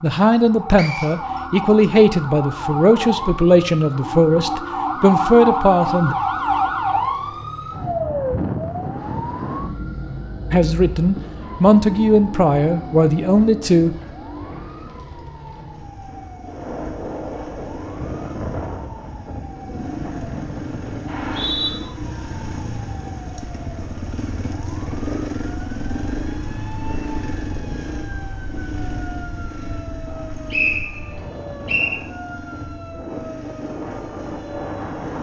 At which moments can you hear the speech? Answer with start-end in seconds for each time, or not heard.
0.0-6.2, 10.5-13.9.